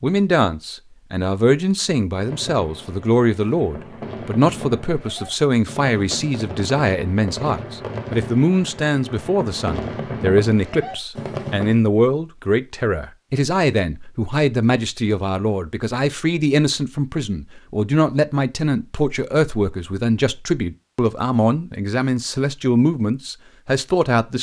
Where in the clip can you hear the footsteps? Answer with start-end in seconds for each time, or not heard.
not heard.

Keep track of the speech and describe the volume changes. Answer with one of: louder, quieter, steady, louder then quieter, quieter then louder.
steady.